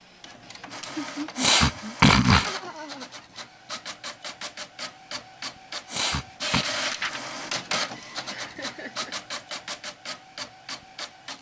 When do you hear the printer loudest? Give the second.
7 s.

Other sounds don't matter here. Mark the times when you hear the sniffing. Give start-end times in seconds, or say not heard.
1.4-2.5, 5.8-6.7.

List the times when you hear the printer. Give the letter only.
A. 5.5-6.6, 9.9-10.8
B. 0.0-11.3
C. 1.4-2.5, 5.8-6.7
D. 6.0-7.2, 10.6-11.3
B.